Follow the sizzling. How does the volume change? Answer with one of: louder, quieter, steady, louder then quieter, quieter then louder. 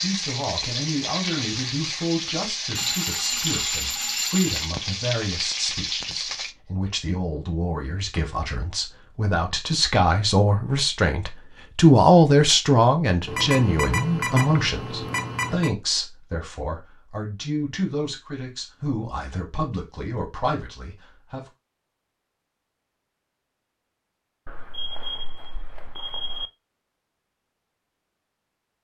steady.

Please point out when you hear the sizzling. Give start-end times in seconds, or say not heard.
0.0-6.5.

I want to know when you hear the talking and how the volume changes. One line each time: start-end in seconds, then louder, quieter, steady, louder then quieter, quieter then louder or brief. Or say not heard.
0.0-21.4 louder then quieter.